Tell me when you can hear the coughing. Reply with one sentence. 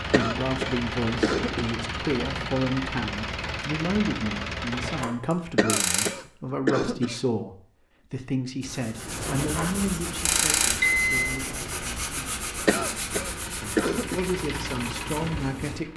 The coughing can be heard from 0.1 to 1.8 s, from 5.5 to 7.2 s and from 12.7 to 14.2 s.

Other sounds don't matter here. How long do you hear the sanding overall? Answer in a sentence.
You can hear the sanding for 7 seconds altogether.